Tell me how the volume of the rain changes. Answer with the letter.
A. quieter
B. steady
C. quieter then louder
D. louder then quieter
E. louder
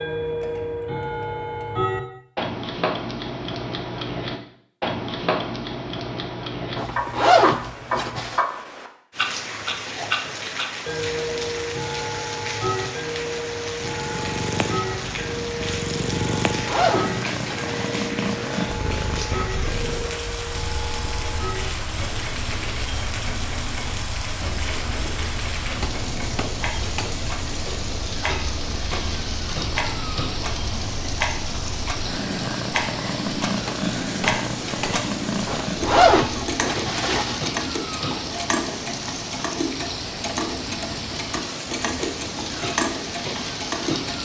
B.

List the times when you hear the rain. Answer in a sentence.
You can hear the rain from 9.1 to 44.1 s.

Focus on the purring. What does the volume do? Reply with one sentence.
The loudness of the purring goes down, then up.